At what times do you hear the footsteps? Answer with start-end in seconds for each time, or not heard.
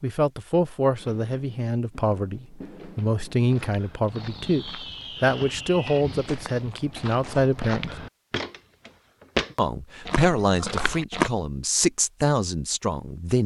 3.4-11.3.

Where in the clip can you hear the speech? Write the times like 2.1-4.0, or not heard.
0.0-8.0, 9.6-13.4.